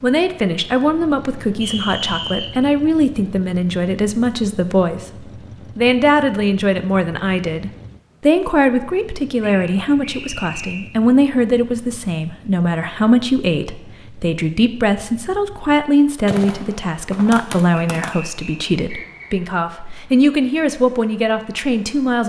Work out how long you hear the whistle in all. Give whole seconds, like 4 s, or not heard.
4 s.